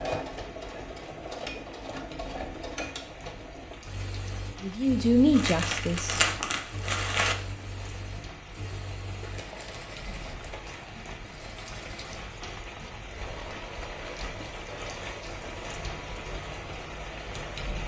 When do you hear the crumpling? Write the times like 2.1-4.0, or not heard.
5.3-7.3, 9.2-10.9.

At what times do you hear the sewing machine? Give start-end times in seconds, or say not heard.
0.0-17.8.